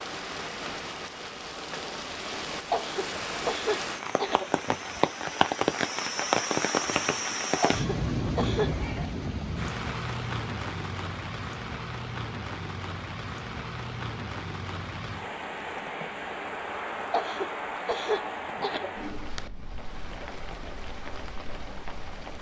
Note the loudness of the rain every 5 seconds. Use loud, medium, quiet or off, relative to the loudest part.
medium, loud, medium, medium, quiet.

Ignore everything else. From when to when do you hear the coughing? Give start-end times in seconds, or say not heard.
2.7-4.5, 7.6-8.7, 17.1-18.9.